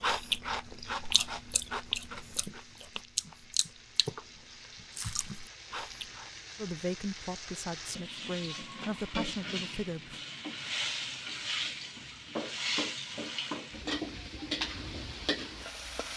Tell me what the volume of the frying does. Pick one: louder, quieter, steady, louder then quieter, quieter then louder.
louder.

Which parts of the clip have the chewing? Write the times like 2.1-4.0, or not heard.
0.0-6.3.